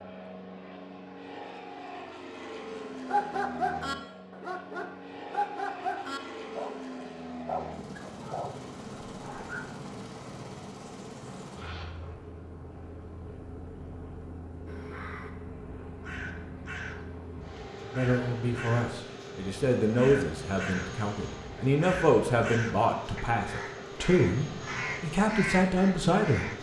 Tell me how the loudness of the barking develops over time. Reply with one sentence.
The volume of the barking goes down.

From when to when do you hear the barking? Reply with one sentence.
The barking can be heard from 3.0 to 9.7 s.